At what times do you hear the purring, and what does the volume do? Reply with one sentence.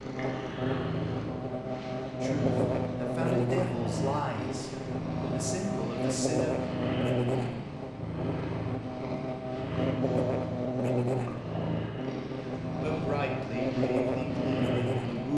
You can hear the purring from 0.0 to 15.3 s, at a steady volume.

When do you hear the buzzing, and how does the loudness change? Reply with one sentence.
The buzzing can be heard from 0.0 to 15.3 s, at a steady volume.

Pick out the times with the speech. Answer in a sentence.
The speech can be heard from 2.2 to 6.5 s and from 12.8 to 15.3 s.